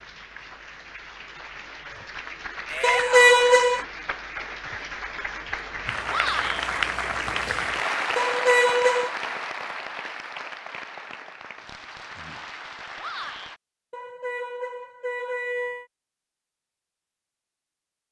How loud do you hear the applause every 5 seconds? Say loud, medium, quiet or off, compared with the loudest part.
medium, loud, medium, off.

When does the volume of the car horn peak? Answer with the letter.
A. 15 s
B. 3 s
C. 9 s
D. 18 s
B.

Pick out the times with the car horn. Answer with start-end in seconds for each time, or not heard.
2.8-3.8, 8.2-9.2, 13.9-15.8.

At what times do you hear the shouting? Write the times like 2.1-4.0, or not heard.
2.6-3.5, 6.0-6.7, 12.9-13.6.